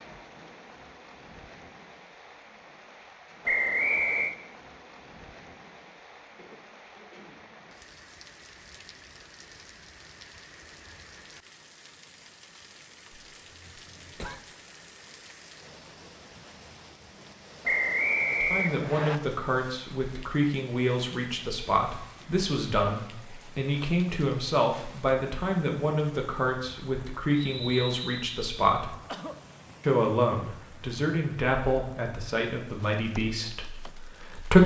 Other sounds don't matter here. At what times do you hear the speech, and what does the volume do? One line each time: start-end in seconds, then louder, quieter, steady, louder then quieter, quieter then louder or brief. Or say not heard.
18.3-28.9 steady
29.8-34.6 quieter.